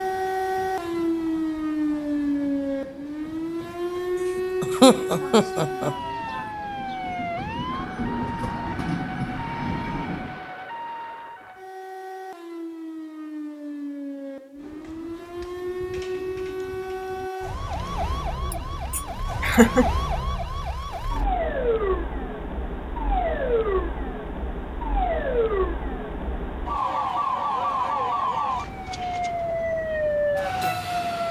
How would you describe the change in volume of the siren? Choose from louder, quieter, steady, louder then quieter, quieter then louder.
quieter then louder.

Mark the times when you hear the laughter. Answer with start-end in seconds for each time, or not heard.
4.6-6.4, 18.5-19.9.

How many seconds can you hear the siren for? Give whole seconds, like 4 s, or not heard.
31 s.